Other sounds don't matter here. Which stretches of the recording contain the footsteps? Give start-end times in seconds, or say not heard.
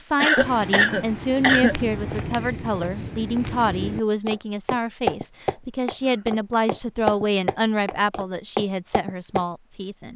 0.4-9.4.